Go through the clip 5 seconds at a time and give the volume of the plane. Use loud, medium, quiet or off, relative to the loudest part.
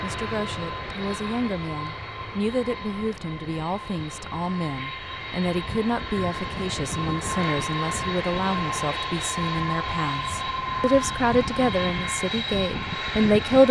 medium, loud, loud.